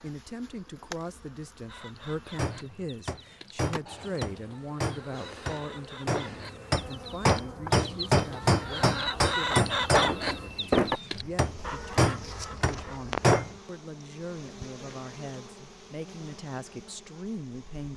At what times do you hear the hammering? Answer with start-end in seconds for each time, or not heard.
2.4-13.6.